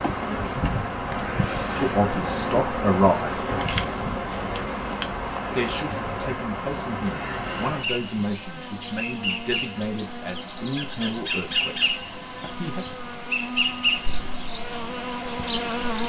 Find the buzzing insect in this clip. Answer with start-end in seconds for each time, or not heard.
0.0-16.0.